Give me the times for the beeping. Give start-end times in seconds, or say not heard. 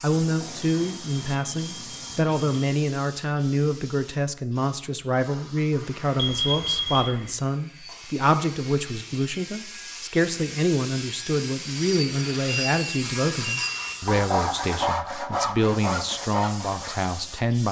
0.1-2.7, 6.2-7.2, 12.2-14.1.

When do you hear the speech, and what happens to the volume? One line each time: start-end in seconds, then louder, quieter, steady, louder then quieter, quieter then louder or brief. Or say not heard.
0.0-17.6 steady.